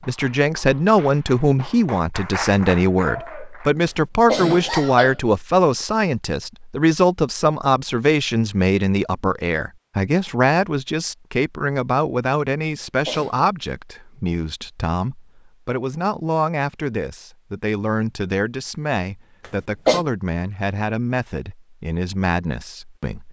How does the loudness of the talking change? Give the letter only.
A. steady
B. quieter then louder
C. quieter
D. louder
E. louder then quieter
C.